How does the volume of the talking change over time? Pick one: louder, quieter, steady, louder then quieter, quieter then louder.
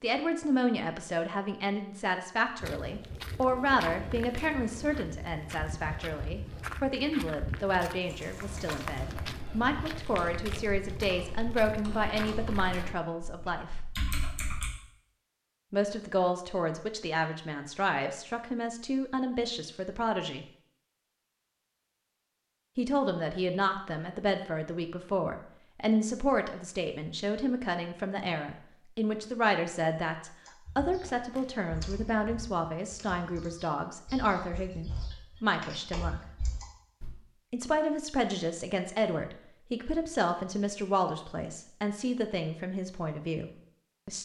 steady.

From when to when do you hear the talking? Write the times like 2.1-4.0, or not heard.
0.0-13.7, 15.7-20.4, 22.8-36.1, 37.5-44.2.